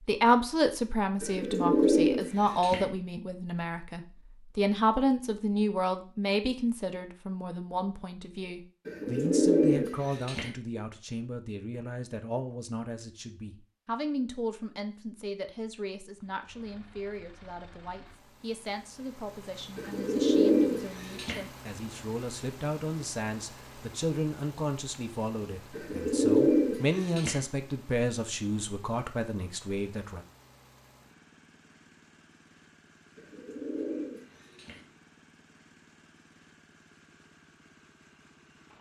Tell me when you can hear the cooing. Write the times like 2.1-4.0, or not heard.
1.2-2.9, 8.8-10.5, 19.8-21.4, 25.8-27.4, 33.1-34.8.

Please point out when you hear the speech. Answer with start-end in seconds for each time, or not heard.
0.1-30.2.